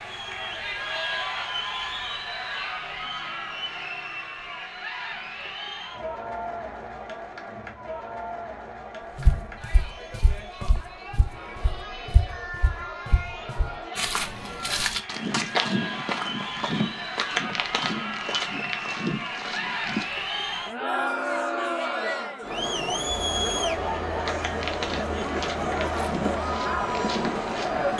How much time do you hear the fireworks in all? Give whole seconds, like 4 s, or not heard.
not heard.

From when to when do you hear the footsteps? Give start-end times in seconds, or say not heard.
9.2-20.1, 24.1-27.9.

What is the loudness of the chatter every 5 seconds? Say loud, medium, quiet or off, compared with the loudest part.
medium, medium, medium, medium, loud, loud.